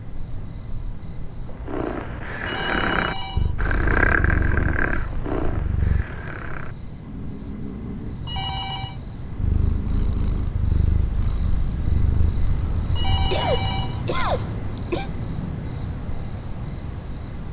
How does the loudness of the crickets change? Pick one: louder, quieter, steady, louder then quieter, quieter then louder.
louder.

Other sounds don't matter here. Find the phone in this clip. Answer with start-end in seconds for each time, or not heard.
2.4-3.5, 8.2-9.0, 12.9-14.1.